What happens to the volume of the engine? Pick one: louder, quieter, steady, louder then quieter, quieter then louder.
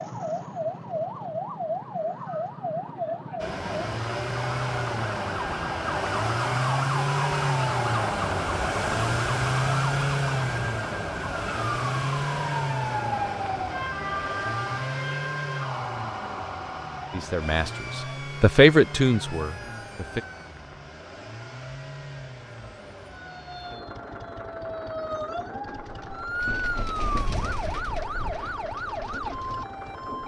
quieter.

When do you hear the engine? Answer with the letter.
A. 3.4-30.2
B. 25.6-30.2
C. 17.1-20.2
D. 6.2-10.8
A.